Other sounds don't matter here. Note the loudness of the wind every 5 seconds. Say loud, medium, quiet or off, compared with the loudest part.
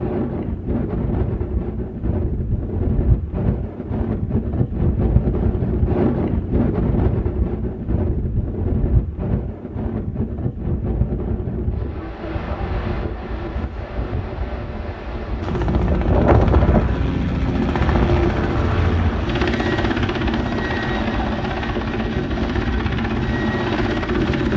loud, loud, medium, medium, medium.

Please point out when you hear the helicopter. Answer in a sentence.
The helicopter can be heard from 15.4 to 24.5 s.